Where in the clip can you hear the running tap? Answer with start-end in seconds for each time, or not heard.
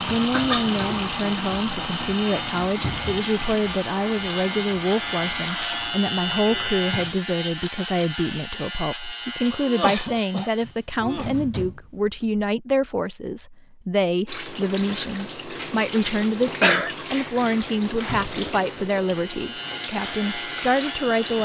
0.0-7.2, 14.2-21.3.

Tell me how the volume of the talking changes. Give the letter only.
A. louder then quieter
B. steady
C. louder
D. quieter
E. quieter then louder
B.